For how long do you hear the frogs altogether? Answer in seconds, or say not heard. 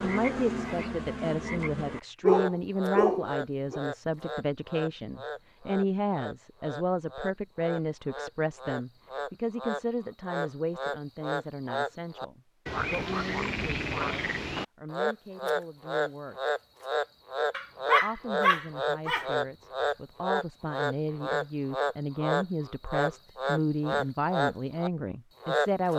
26 s.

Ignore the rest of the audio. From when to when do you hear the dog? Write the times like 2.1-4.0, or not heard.
2.2-3.8, 17.5-19.3.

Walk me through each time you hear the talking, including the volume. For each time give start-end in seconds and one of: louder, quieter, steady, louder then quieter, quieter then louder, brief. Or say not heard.
0.0-16.4 quieter
18.0-25.9 louder.